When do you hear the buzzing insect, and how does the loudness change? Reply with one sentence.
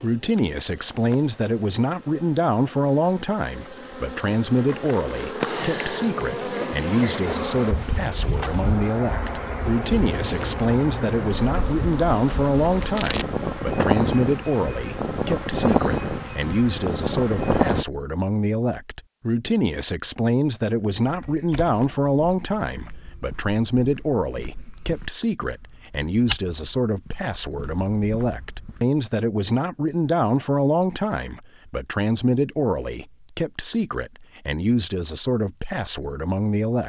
You can hear the buzzing insect from 0.0 to 17.9 s, getting louder.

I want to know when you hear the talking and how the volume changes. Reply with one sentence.
The talking can be heard from 0.0 to 36.8 s, at a steady volume.